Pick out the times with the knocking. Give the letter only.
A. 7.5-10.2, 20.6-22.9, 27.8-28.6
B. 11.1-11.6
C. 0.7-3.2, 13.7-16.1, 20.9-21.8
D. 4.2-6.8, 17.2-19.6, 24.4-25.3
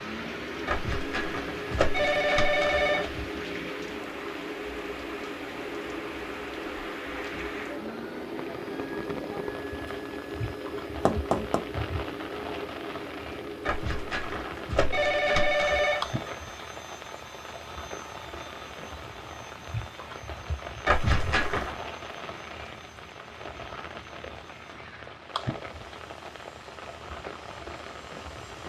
B.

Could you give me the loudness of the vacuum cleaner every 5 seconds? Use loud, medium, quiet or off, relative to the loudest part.
loud, loud, loud, medium, quiet, quiet.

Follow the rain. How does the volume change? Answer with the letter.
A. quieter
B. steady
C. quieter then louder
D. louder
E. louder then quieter
B.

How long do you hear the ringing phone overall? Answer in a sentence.
You can hear the ringing phone for 6 seconds altogether.